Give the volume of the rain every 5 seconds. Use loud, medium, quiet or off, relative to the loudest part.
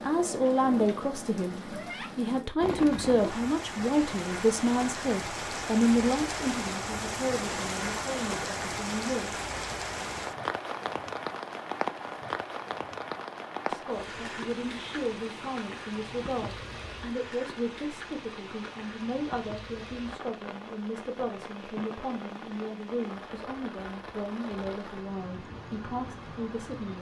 loud, loud, loud, medium, medium, medium.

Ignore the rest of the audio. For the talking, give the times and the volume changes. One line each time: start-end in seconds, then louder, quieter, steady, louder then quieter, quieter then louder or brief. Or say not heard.
0.0-9.4 quieter
13.7-26.9 steady.